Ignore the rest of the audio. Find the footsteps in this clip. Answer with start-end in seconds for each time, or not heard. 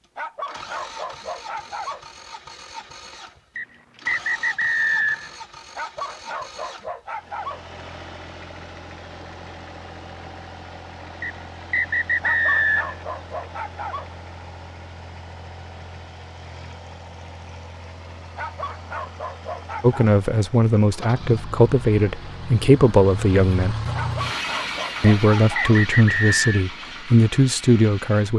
not heard.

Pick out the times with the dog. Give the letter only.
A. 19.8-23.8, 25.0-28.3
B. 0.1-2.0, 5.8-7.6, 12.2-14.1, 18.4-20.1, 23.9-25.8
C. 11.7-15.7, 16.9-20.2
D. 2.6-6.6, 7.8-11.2
B.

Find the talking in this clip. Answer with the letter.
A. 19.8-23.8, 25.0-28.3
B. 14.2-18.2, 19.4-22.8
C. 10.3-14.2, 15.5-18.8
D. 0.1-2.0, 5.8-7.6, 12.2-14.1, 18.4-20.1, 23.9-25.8
A.